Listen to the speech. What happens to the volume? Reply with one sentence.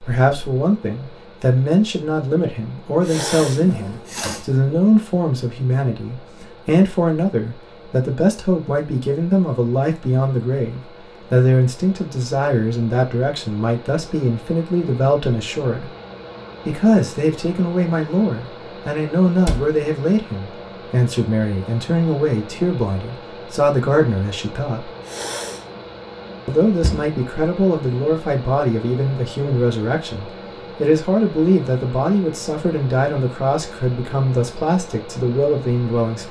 The loudness of the speech stays about the same.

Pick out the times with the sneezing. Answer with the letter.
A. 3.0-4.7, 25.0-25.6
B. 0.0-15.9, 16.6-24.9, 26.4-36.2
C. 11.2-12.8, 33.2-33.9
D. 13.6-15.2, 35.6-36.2
A.